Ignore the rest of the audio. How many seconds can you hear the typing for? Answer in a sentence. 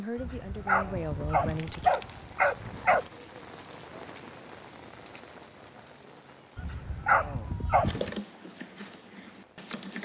The typing can be heard for 2 seconds in total.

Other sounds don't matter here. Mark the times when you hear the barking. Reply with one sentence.
You can hear the barking from 0.1 to 3.0 s and from 6.5 to 8.1 s.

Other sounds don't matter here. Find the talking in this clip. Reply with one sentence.
You can hear the talking from 0.0 to 1.9 s.